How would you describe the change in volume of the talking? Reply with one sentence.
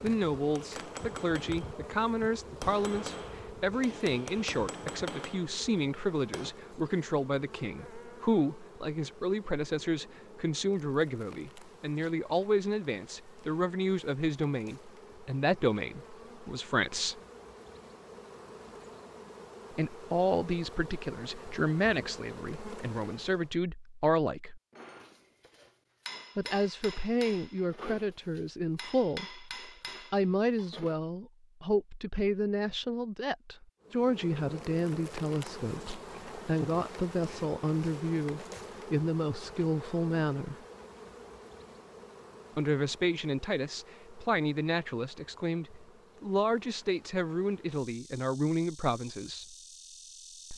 The volume of the talking stays about the same.